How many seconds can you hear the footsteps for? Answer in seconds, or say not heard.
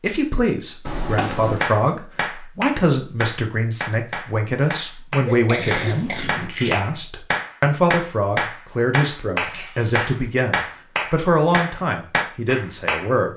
not heard.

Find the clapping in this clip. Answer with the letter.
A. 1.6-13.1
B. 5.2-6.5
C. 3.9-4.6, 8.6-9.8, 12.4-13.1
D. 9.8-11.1
A.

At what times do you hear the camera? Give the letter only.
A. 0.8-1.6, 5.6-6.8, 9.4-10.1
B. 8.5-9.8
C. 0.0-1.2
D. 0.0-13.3
A.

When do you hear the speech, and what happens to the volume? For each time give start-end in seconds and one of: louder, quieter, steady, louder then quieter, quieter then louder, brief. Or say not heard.
0.0-13.3 steady.